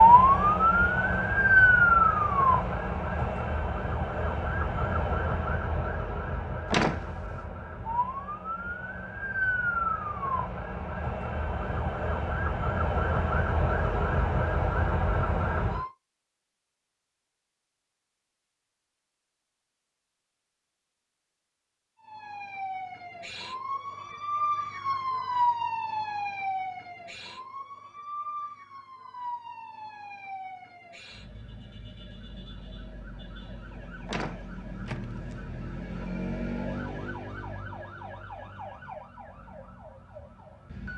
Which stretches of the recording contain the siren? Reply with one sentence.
The siren can be heard from 0.0 to 15.9 s and from 22.0 to 40.9 s.